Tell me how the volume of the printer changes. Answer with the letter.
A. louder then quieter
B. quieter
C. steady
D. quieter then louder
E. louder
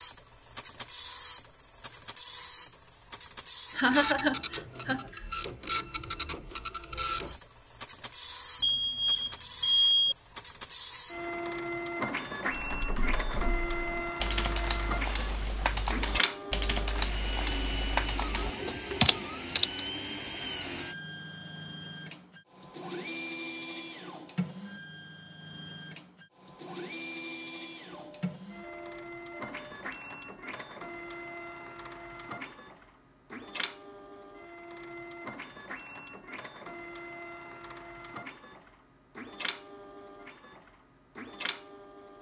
B.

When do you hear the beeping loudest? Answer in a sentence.
The volume of the beeping peaks at 10 seconds.